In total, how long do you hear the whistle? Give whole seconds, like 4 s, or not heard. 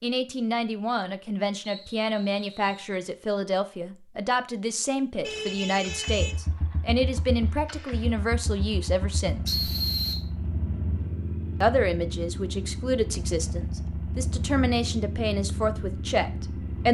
2 s.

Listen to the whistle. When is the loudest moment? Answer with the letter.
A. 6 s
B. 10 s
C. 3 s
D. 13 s
B.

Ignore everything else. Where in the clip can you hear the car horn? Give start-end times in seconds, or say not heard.
5.2-6.4.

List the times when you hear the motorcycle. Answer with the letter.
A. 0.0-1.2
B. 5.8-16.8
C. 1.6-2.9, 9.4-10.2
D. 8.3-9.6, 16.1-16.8
B.